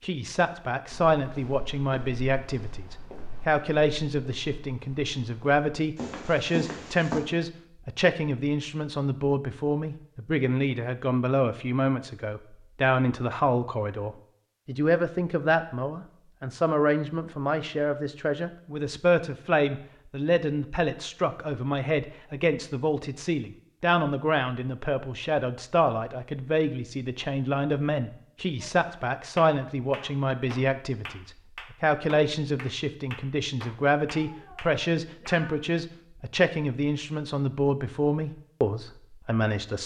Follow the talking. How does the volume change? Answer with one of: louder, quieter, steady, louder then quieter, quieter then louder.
steady.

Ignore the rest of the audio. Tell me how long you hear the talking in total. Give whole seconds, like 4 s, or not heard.
40 s.